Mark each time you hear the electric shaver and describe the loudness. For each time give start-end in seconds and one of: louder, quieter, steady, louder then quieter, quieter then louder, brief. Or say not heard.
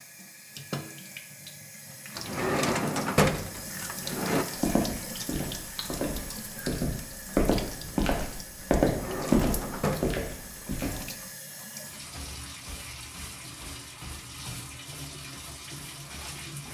not heard.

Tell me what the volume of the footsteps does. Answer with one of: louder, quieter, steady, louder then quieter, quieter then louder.
louder then quieter.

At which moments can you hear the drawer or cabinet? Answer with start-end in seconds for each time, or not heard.
2.1-4.5, 8.8-10.2.